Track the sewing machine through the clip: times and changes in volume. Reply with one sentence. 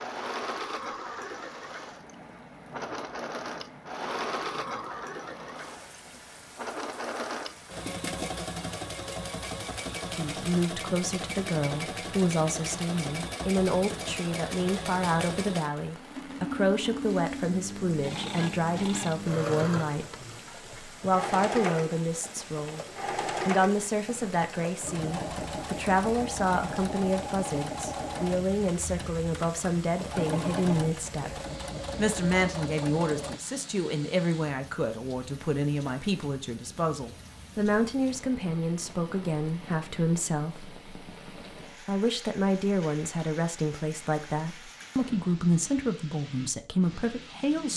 The sewing machine can be heard from 0.0 to 33.4 s, at a steady volume.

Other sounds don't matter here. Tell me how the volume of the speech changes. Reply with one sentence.
The loudness of the speech stays about the same.